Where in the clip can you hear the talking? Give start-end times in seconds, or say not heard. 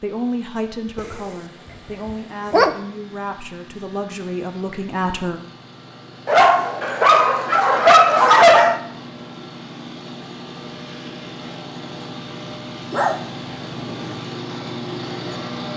0.0-5.4.